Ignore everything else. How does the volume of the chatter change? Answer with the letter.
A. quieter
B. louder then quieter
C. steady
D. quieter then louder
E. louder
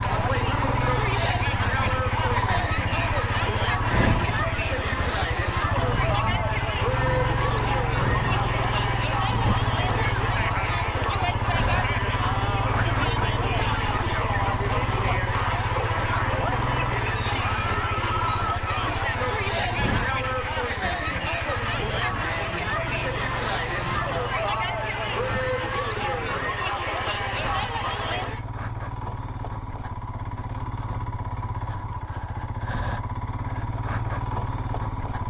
C.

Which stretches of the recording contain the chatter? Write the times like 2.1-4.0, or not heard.
0.0-28.4.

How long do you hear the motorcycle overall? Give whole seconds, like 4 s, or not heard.
35 s.